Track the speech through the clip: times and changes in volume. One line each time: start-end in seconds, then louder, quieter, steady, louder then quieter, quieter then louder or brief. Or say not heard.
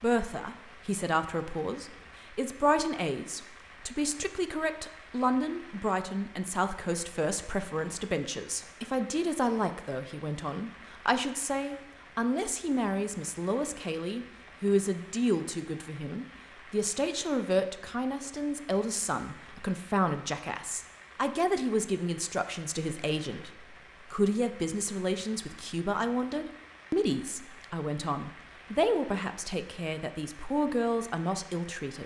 0.0-32.0 steady.